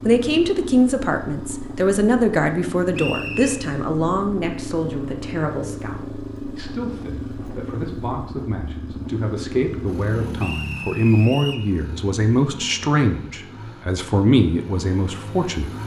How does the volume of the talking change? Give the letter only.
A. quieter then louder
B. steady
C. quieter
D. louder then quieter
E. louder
A.